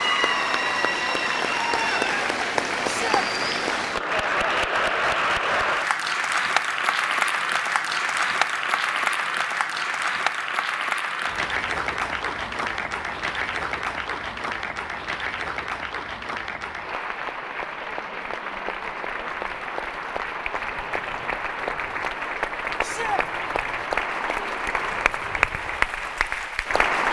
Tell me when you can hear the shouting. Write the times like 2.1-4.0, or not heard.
2.8-3.2, 22.8-23.2.